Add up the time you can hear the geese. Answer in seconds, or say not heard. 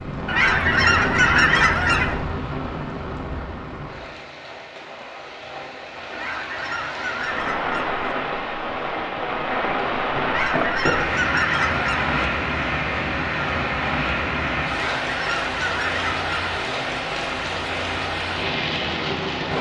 8 s.